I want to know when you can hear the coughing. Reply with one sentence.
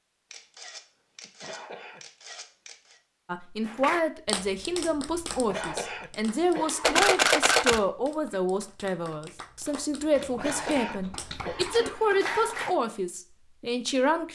The coughing can be heard from 1.2 to 2.0 s, from 5.3 to 7.0 s and from 10.2 to 12.2 s.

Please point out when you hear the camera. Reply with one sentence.
The camera can be heard from 0.3 to 3.0 s, from 6.8 to 7.8 s and from 10.2 to 12.7 s.